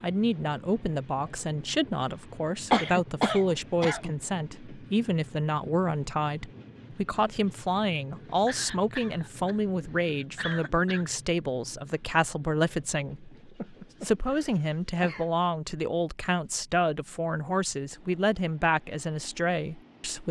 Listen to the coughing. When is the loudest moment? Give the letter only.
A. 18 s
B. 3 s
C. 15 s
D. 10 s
B.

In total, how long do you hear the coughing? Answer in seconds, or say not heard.
6 s.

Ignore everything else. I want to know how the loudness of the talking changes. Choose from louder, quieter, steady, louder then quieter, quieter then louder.
steady.